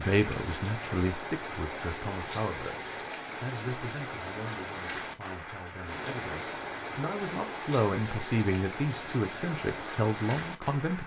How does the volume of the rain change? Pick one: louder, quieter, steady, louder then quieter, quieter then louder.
steady.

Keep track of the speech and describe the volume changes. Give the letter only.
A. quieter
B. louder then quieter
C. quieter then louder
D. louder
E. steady
C.